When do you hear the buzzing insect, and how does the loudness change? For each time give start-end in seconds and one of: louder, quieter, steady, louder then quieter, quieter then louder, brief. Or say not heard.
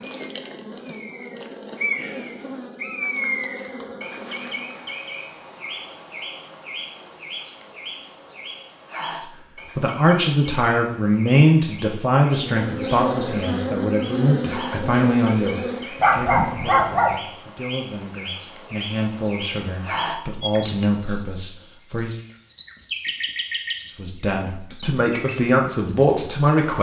0.0-4.8 steady
12.3-16.8 quieter.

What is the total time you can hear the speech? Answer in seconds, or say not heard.
16 s.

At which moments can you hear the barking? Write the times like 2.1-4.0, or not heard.
15.9-17.1.